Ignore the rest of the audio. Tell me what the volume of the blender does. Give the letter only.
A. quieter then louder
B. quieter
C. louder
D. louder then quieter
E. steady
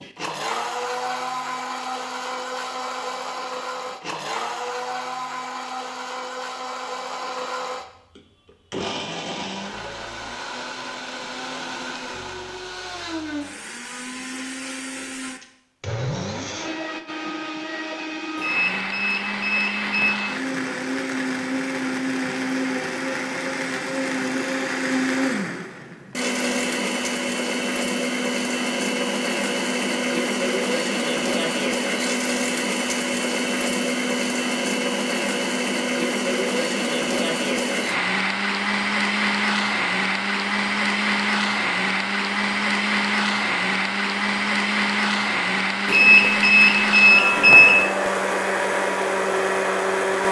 C.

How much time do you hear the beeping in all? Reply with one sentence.
The beeping can be heard for 4 seconds in total.